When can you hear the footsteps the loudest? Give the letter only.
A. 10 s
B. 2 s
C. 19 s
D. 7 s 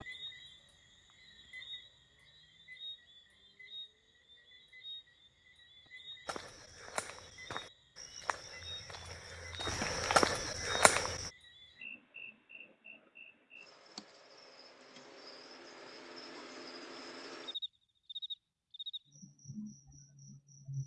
A.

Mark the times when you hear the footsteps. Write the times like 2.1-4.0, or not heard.
6.2-11.3.